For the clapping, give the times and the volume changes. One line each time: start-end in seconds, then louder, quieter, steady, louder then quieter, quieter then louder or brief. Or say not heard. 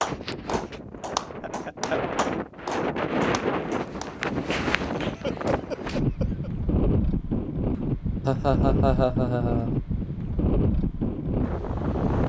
0.0-6.0 quieter.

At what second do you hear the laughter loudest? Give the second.
9 s.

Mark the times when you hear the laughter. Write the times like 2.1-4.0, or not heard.
1.4-2.0, 5.0-6.5, 8.2-9.8.